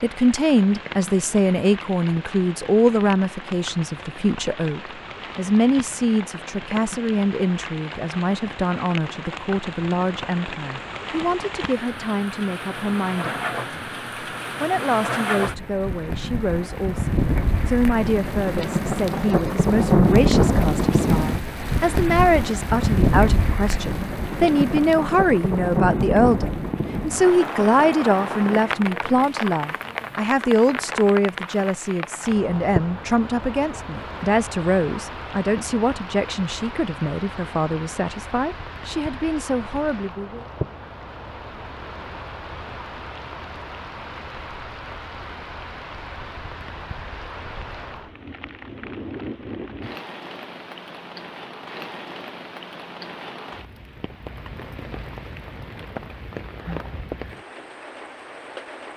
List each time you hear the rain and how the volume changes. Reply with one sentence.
You can hear the rain from 0.0 to 58.9 s, getting louder then quieter.